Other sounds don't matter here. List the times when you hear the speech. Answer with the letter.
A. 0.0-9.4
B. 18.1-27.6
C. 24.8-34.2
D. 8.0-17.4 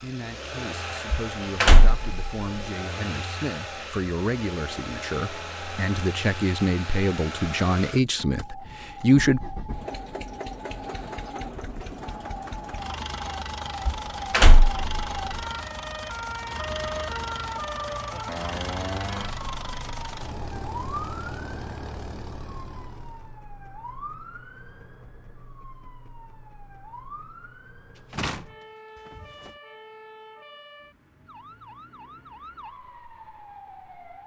A.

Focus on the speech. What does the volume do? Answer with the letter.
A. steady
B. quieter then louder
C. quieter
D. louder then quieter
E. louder
E.